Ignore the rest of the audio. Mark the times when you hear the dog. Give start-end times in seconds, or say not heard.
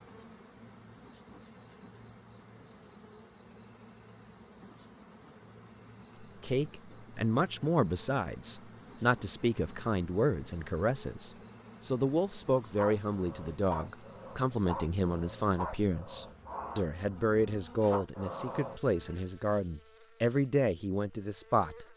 12.8-19.2.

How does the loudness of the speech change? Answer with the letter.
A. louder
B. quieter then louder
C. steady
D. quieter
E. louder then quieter
C.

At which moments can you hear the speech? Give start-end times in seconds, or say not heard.
6.2-21.9.